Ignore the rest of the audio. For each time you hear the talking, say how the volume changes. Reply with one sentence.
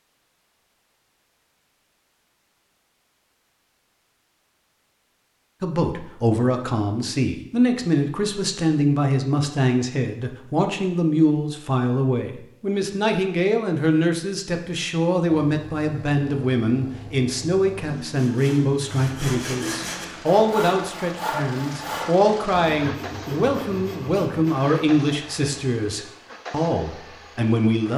You can hear the talking from 5.6 to 27.9 s, at a steady volume.